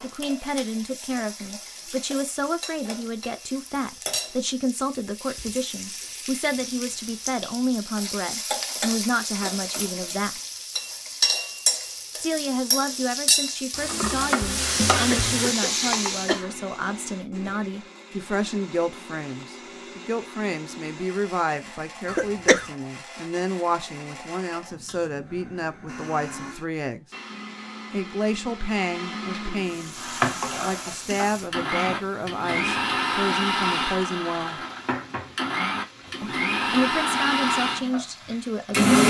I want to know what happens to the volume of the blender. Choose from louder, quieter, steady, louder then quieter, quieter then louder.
louder.